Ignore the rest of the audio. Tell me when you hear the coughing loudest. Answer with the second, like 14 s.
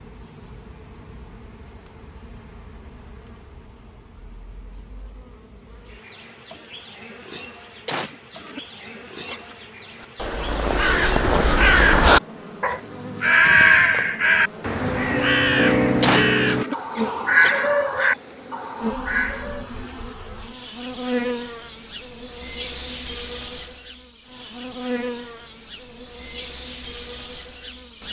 16 s.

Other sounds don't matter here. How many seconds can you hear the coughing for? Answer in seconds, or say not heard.
4 s.